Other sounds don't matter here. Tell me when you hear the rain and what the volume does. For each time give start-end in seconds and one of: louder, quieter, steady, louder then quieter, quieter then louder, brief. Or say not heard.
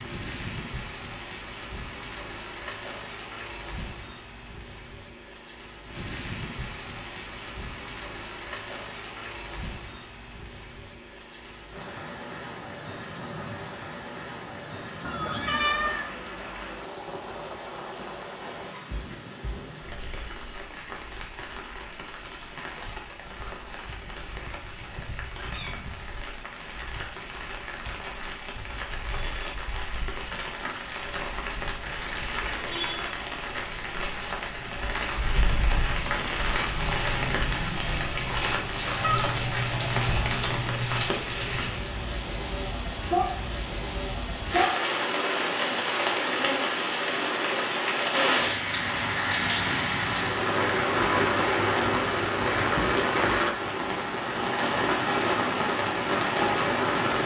0.0-57.2 louder.